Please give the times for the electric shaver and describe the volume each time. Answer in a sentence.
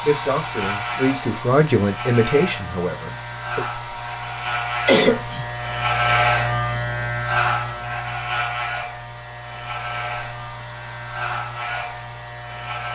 The electric shaver can be heard from 0.0 to 12.9 s, getting louder then quieter.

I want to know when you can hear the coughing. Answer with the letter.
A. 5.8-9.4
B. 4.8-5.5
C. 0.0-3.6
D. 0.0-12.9
B.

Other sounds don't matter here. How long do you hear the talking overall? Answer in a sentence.
The talking can be heard for 4 seconds in total.